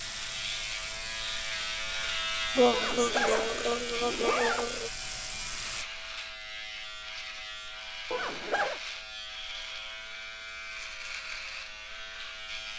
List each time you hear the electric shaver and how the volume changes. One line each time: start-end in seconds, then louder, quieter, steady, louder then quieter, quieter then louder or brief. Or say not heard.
0.0-12.7 quieter.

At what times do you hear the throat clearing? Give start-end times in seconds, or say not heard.
2.5-4.9.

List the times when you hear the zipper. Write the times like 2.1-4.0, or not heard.
2.7-4.7, 8.1-8.8.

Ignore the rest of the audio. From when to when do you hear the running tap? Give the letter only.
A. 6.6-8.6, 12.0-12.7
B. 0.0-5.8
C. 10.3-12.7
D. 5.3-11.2
B.